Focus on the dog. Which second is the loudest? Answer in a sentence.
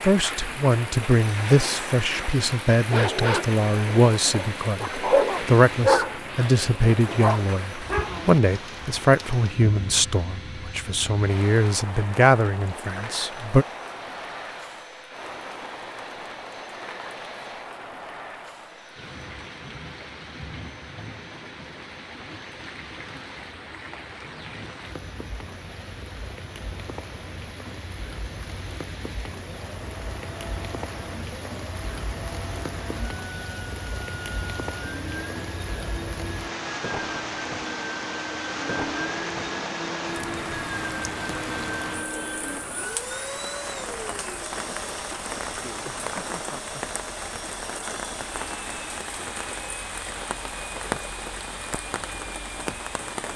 The loudest moment of the dog is at 6 seconds.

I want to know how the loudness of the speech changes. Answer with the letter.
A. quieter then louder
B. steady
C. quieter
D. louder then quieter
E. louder
B.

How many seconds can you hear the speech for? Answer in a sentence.
The speech can be heard for 14 seconds in total.